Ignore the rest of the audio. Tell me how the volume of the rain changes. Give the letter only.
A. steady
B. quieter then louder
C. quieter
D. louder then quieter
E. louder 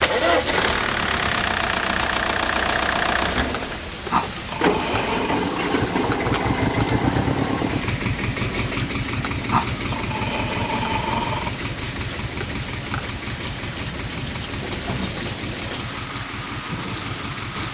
A.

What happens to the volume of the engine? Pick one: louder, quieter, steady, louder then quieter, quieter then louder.
quieter.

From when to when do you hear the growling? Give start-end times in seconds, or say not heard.
4.1-5.5, 9.5-11.5.